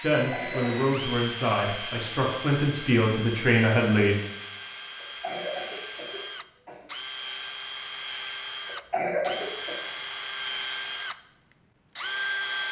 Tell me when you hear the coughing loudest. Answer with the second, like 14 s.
9 s.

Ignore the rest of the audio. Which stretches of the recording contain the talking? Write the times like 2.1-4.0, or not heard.
0.0-4.2.